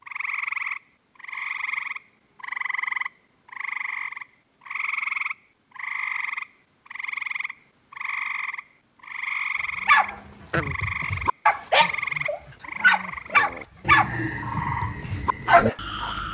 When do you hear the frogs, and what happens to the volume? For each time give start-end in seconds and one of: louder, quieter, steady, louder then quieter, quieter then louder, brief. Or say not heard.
0.0-16.2 steady.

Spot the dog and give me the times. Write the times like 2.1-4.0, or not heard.
9.8-16.1.